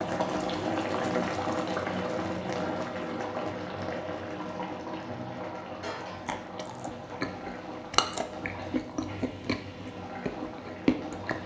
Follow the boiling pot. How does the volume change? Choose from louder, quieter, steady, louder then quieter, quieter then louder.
quieter.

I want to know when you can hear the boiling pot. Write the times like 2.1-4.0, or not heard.
0.0-11.4.